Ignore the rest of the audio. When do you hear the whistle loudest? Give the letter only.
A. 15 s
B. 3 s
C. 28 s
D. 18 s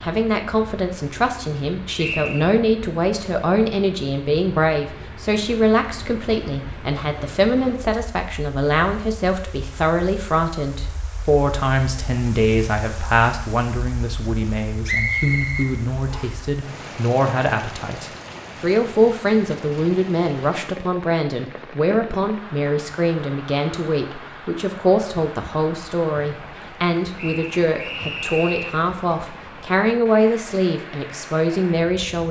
A.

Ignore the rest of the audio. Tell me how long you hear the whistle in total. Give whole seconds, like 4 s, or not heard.
4 s.